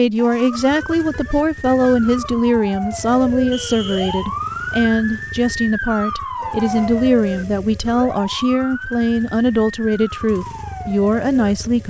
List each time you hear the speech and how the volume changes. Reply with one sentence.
The speech can be heard from 0.0 to 11.8 s, at a steady volume.